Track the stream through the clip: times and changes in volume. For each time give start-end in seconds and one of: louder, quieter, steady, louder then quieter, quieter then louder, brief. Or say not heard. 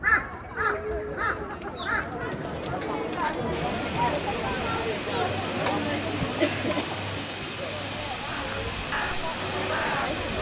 3.5-10.3 steady.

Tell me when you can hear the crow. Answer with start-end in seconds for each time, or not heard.
0.0-3.4, 8.2-10.2.